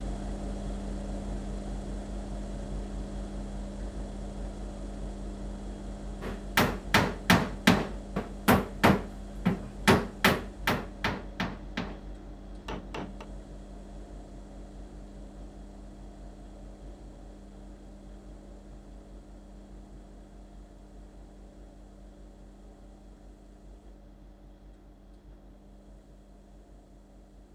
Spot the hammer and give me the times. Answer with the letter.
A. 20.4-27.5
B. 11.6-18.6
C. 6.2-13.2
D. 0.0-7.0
C.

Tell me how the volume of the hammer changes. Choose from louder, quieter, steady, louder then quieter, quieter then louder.
quieter.